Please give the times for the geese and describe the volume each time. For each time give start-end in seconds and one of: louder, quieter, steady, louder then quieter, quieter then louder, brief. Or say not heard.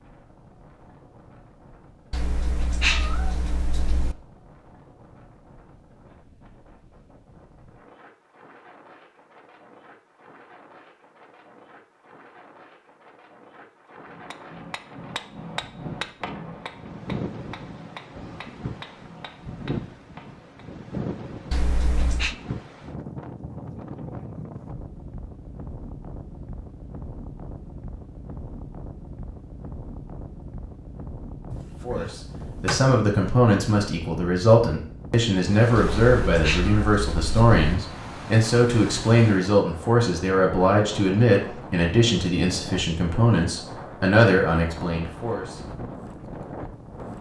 not heard.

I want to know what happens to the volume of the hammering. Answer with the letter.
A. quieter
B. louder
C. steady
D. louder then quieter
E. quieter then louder
A.